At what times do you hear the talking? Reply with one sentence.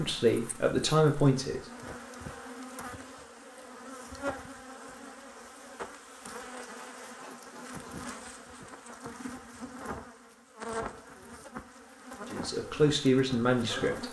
You can hear the talking from 0.0 to 1.6 s and from 12.3 to 14.0 s.